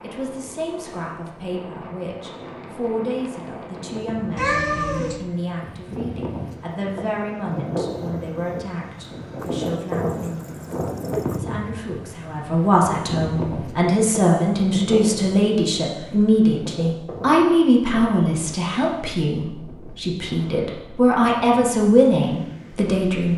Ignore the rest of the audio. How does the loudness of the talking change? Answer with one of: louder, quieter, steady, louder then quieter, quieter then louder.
louder.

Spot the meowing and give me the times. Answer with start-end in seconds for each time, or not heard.
4.3-5.2.